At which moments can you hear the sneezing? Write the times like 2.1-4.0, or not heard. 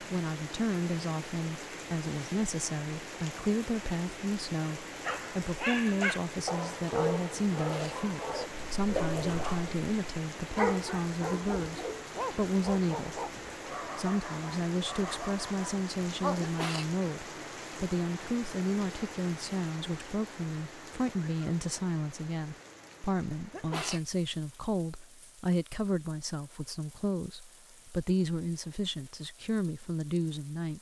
7.5-8.0, 16.4-16.9, 23.5-24.1.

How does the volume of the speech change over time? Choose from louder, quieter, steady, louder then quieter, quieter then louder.
steady.